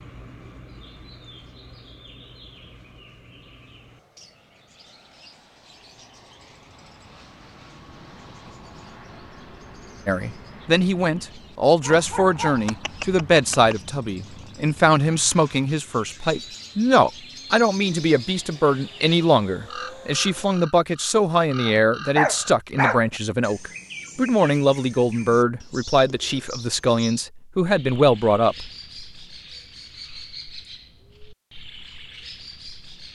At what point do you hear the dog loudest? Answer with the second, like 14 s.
22 s.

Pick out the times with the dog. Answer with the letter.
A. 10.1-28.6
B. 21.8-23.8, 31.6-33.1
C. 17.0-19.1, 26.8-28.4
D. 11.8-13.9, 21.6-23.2
D.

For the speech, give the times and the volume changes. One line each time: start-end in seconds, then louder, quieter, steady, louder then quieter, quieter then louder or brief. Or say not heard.
10.1-28.6 steady.